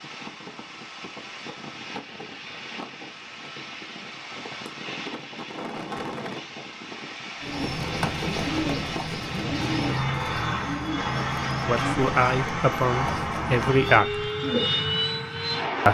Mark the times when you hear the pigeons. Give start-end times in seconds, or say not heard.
7.4-14.8.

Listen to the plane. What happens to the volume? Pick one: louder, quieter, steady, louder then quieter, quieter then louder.
louder.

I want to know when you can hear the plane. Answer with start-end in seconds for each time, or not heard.
0.0-15.8.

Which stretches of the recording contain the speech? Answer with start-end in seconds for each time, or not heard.
11.7-14.2.